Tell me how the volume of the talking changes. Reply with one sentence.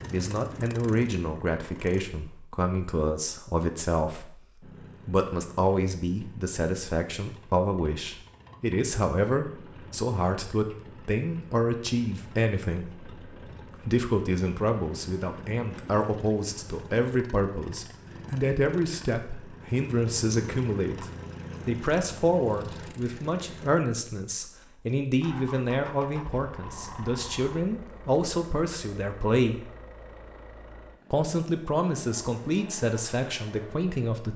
The volume of the talking stays about the same.